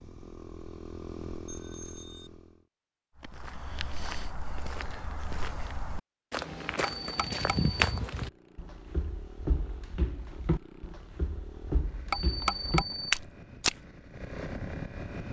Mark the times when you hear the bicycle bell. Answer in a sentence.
The bicycle bell can be heard from 1.4 to 2.3 s, from 7.0 to 7.8 s and from 12.1 to 13.2 s.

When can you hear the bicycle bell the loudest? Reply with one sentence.
The volume of the bicycle bell peaks at 13 seconds.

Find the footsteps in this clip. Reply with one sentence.
You can hear the footsteps from 3.2 to 13.8 s.